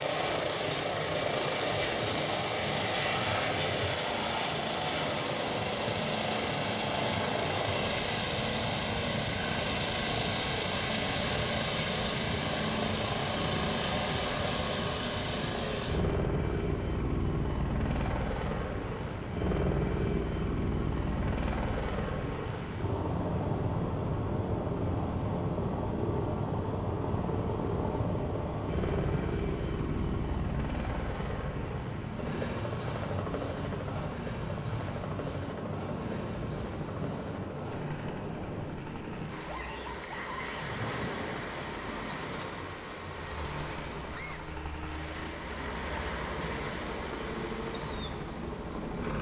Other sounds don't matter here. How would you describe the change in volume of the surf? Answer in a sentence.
The volume of the surf stays about the same.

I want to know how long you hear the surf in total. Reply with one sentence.
You can hear the surf for 49 seconds altogether.